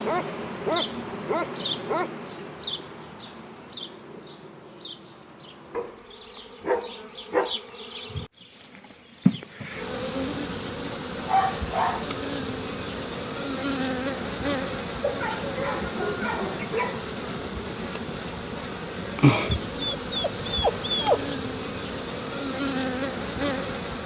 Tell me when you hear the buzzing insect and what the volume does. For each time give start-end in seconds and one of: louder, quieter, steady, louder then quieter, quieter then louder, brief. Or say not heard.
0.0-24.0 louder.